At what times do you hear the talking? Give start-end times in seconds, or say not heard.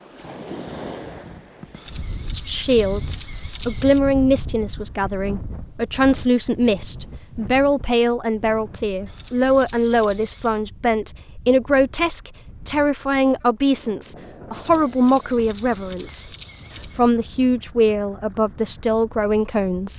2.3-16.2, 16.9-19.9.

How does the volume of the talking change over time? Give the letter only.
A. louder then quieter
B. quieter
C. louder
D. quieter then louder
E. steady
E.